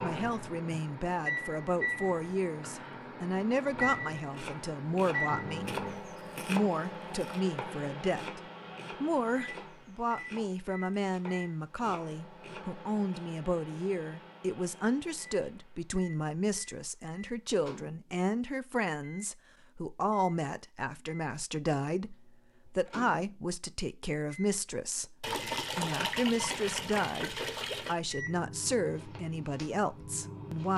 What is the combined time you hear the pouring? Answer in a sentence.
The pouring can be heard for 3 seconds in total.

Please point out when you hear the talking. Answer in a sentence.
The talking can be heard from 0.0 to 5.8 s, from 6.5 to 8.4 s and from 9.0 to 30.7 s.